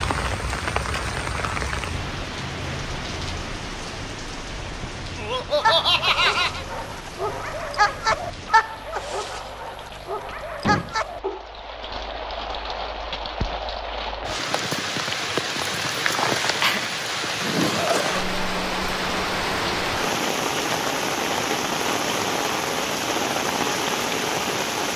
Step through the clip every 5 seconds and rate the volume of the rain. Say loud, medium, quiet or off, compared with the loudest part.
medium, quiet, medium, loud, loud.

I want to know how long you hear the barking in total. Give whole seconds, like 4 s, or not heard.
6 s.